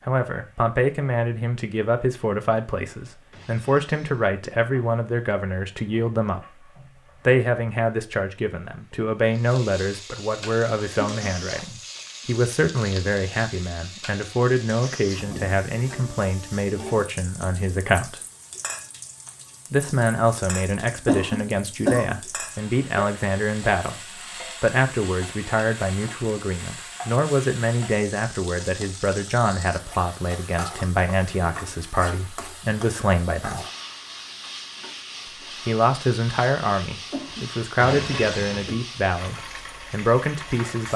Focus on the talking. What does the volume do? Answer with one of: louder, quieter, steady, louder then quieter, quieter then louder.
steady.